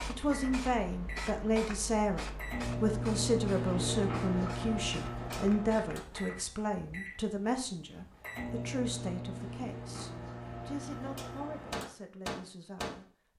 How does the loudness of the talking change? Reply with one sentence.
The loudness of the talking goes down.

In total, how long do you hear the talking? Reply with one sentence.
The talking can be heard for 13 seconds in total.